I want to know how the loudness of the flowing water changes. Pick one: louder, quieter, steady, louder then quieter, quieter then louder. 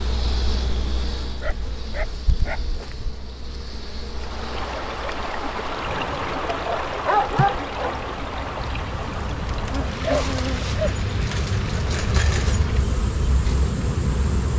quieter.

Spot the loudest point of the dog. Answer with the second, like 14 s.
7 s.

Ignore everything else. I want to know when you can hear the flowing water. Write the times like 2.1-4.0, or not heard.
4.0-14.5.